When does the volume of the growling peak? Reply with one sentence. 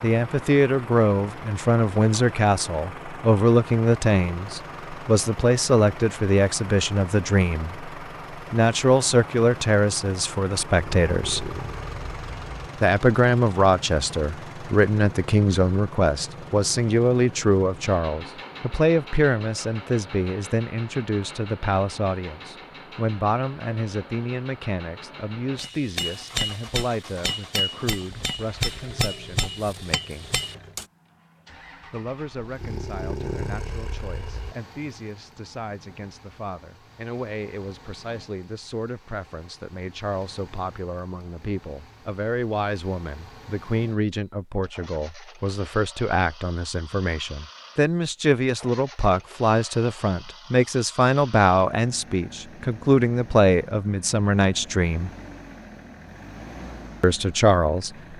The volume of the growling peaks at 33 seconds.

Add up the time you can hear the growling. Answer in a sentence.
You can hear the growling for 4 seconds altogether.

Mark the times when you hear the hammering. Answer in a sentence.
The hammering can be heard from 25.6 to 30.9 s.